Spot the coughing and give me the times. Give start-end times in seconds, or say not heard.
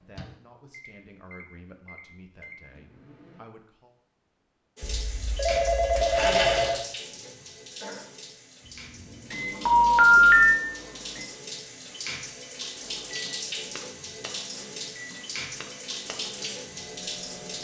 7.1-8.1.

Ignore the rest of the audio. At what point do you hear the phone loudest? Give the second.
10 s.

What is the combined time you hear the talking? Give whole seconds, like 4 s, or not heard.
4 s.